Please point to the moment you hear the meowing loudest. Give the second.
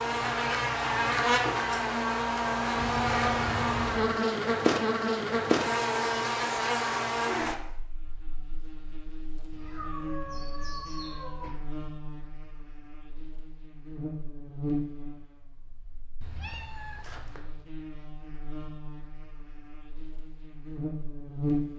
3 s.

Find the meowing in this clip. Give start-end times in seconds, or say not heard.
2.8-4.2, 9.5-11.6, 16.2-17.4.